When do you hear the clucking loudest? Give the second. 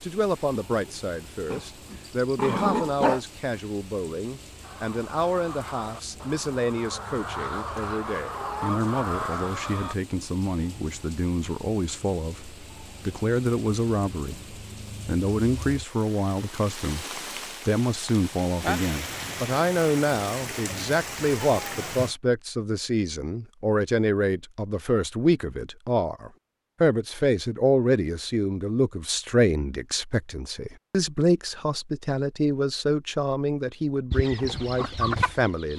35 s.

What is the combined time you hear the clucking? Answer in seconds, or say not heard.
7 s.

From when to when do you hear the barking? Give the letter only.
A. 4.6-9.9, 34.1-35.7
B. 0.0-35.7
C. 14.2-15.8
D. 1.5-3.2
D.